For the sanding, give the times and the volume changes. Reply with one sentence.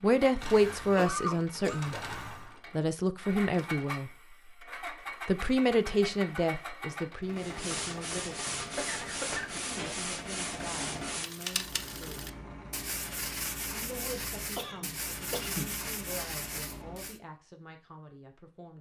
The sanding can be heard from 7.3 to 17.2 s, at a steady volume.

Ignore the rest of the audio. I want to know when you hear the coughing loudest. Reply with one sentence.
The volume of the coughing peaks at 1 second.